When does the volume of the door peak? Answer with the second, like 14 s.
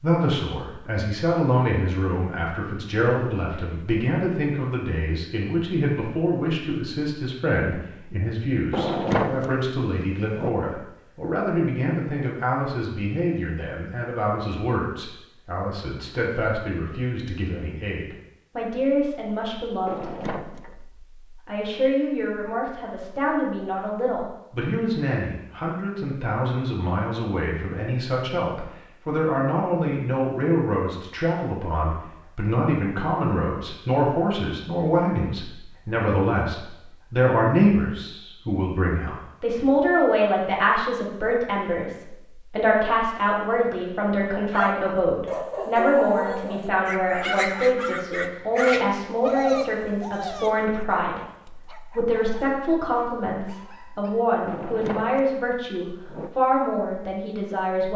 9 s.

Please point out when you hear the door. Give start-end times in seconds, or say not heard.
8.7-10.5, 19.9-20.8, 54.5-56.3.